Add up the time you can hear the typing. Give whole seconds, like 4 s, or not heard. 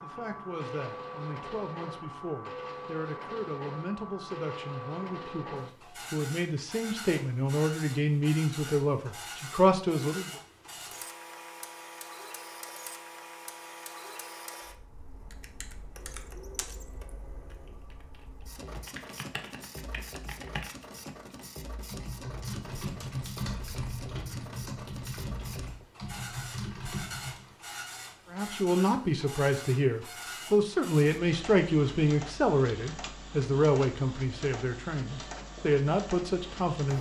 12 s.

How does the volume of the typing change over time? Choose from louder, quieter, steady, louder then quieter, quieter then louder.
louder.